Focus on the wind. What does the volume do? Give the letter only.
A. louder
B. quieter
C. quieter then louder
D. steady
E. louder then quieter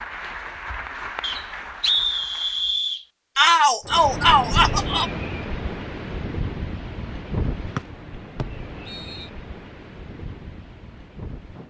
B.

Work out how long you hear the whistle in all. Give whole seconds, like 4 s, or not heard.
3 s.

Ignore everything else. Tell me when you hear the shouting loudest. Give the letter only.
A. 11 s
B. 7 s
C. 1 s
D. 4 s
D.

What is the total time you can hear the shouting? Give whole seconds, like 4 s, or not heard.
2 s.